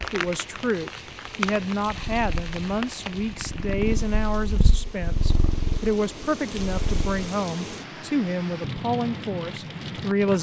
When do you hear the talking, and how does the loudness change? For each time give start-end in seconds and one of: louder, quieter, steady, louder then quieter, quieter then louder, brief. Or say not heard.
0.1-10.3 steady.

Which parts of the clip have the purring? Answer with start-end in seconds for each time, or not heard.
1.9-7.2.